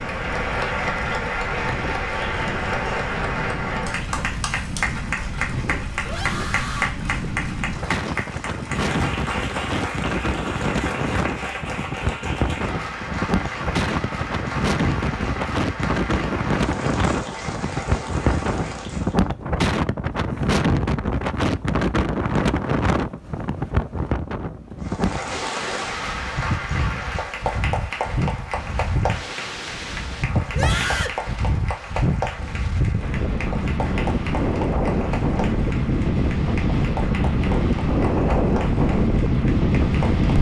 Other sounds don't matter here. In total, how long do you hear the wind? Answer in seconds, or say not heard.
40 s.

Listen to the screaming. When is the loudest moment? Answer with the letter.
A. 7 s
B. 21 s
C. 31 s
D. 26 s
C.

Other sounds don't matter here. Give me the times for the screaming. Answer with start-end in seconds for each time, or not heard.
6.0-7.0, 30.5-31.2.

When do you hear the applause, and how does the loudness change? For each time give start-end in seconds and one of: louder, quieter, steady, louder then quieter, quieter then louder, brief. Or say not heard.
0.0-19.2 quieter
24.8-40.3 quieter.